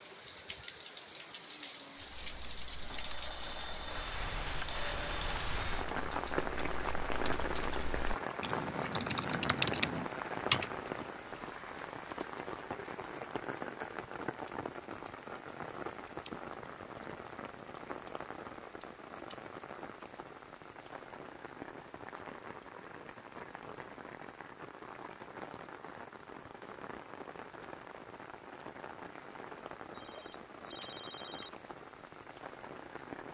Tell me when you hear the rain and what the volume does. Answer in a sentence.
The rain can be heard from 0.0 to 33.3 s, getting quieter.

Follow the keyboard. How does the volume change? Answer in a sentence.
The volume of the keyboard goes up.